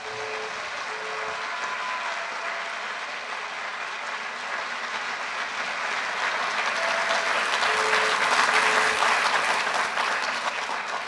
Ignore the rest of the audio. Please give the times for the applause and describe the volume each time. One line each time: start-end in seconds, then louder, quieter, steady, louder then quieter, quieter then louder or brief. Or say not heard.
0.0-11.0 louder.